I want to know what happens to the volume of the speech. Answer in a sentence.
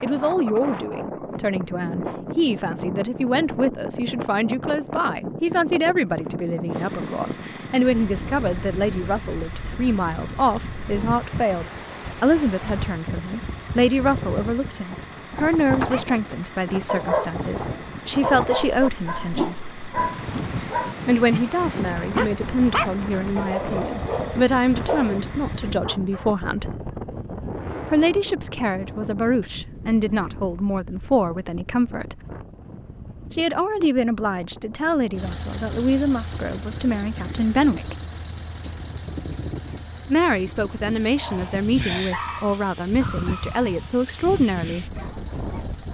The loudness of the speech stays about the same.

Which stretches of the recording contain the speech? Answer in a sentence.
You can hear the speech from 0.0 to 19.6 s, from 21.1 to 26.7 s, from 27.9 to 32.2 s, from 33.3 to 38.0 s and from 40.0 to 44.9 s.